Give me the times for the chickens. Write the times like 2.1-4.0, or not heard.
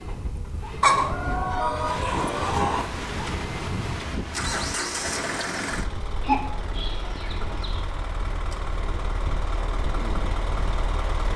0.8-2.9, 6.2-7.8.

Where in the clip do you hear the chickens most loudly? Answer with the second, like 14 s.
1 s.